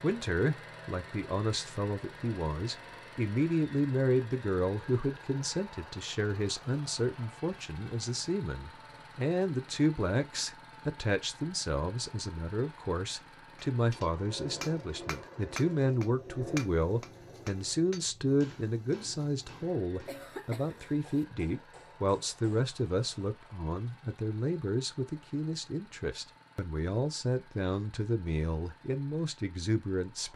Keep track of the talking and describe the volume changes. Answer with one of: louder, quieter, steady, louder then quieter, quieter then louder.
steady.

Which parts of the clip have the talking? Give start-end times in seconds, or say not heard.
0.0-30.3.